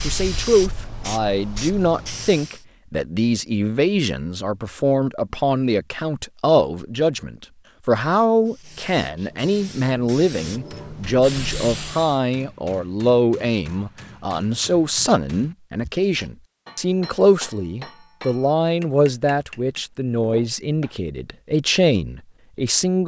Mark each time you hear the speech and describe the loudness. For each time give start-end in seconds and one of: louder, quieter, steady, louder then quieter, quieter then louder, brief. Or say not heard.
0.0-23.0 steady.